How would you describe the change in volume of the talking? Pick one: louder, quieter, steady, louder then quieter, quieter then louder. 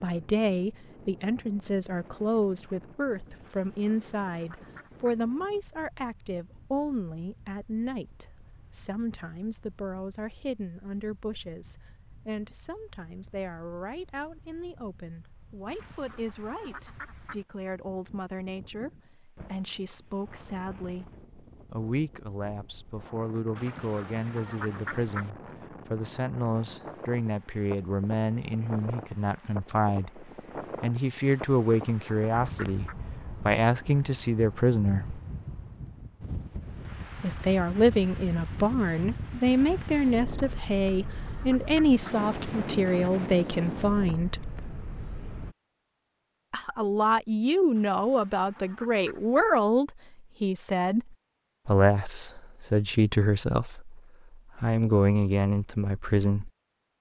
quieter then louder.